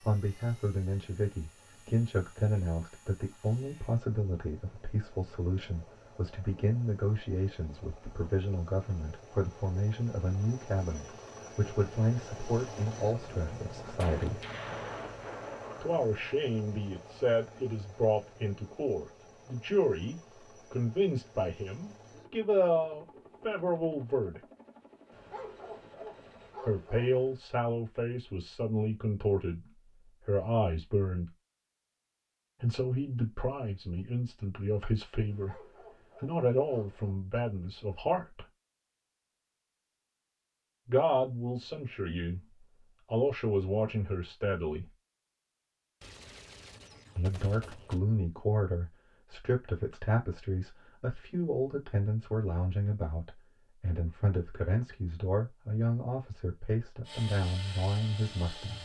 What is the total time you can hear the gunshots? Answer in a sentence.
The gunshots can be heard for 4 seconds in total.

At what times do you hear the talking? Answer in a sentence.
You can hear the talking from 0.0 to 14.4 s, from 15.8 to 24.4 s, from 26.6 to 31.4 s, from 32.6 to 38.5 s, from 40.9 to 44.9 s and from 47.1 to 58.8 s.